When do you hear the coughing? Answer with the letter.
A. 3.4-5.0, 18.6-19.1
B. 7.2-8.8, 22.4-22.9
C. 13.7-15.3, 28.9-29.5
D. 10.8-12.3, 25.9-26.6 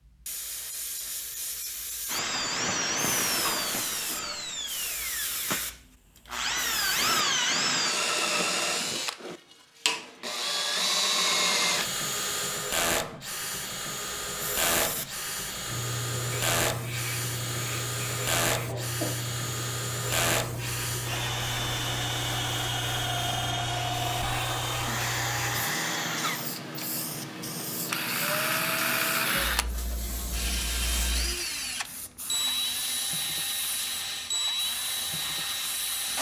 A.